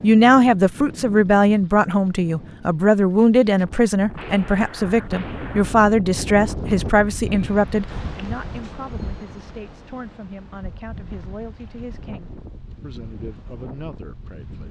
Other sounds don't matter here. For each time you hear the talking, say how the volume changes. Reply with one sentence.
You can hear the talking from 0.0 to 14.6 s, getting quieter.